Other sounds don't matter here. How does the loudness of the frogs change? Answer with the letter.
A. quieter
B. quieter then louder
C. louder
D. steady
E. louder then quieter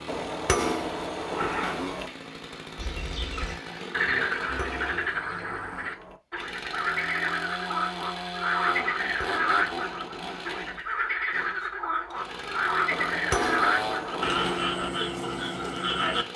D.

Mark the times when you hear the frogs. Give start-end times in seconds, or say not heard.
2.8-16.2.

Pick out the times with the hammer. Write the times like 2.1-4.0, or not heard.
0.1-2.1, 4.4-6.2, 9.0-10.7, 12.9-14.9.